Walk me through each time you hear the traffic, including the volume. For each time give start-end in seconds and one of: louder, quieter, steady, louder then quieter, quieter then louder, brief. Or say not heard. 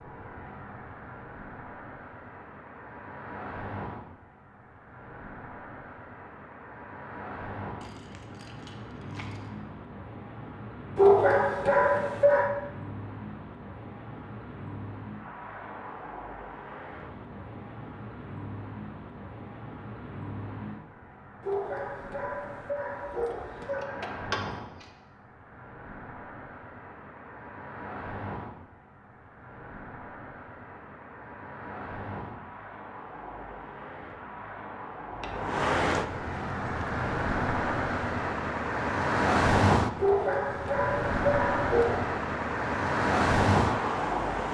0.0-44.4 louder.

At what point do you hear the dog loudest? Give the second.
11 s.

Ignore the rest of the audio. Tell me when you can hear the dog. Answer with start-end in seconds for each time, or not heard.
10.9-12.5, 21.4-23.9, 40.0-42.0.